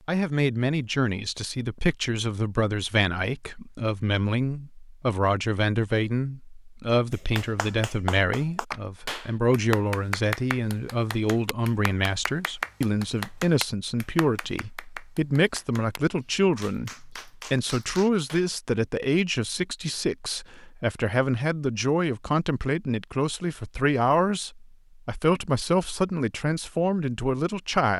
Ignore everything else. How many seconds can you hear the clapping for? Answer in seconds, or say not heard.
11 s.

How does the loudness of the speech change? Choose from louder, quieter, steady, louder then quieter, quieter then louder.
steady.